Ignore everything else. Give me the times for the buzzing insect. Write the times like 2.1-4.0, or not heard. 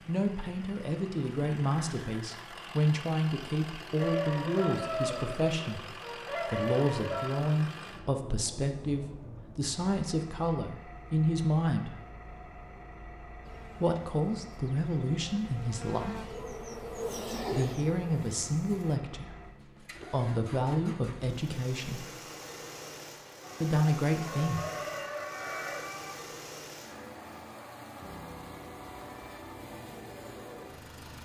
13.4-19.0.